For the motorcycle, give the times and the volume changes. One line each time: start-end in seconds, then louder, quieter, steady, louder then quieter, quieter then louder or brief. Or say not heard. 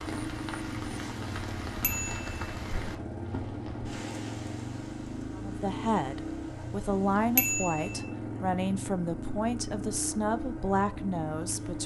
0.0-11.8 steady.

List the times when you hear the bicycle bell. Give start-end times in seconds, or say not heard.
1.8-2.4, 7.3-8.1.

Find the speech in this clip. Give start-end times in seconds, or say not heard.
5.3-11.8.